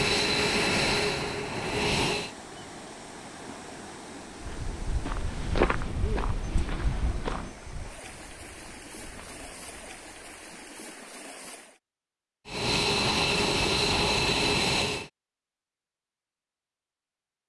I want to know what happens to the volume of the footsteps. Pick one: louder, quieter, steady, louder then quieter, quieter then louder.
quieter.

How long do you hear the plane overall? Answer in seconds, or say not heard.
5 s.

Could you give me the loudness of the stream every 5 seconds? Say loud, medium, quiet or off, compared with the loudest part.
loud, loud, loud, off.